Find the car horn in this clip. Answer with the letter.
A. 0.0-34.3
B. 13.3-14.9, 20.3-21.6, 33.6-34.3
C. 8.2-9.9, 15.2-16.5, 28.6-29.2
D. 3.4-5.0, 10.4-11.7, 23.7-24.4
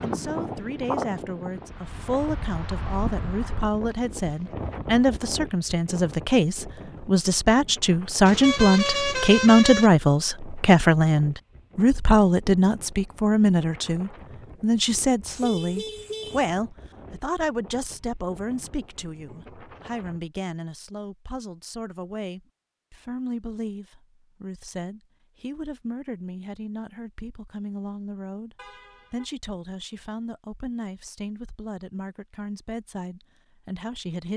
C.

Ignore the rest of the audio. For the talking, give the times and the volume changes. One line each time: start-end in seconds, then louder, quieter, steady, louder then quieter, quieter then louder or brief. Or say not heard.
0.0-34.3 louder then quieter.